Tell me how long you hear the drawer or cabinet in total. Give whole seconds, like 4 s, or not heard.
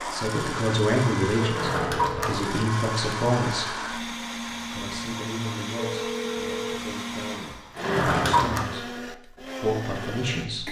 2 s.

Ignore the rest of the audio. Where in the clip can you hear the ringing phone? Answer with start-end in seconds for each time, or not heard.
1.4-2.4, 5.8-6.8.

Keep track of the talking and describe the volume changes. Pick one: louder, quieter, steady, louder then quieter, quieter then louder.
quieter then louder.